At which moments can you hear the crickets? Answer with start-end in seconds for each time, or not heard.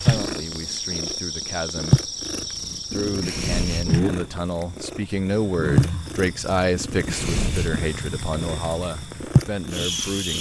0.0-10.3.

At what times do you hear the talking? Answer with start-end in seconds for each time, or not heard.
0.0-2.1, 2.9-10.3.